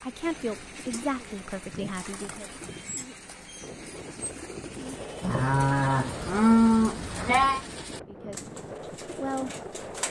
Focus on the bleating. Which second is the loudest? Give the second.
7 s.